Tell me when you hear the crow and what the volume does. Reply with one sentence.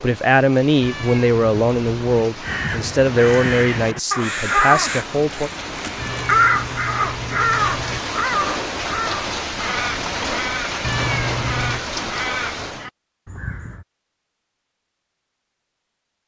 You can hear the crow from 2.4 to 13.8 s, getting quieter.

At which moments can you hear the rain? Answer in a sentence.
The rain can be heard from 0.0 to 12.9 s.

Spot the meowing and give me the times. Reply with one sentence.
The meowing can be heard from 0.8 to 2.3 s, from 6.0 to 8.0 s and from 10.8 to 11.8 s.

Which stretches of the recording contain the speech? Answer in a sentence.
The speech can be heard from 0.0 to 5.5 s.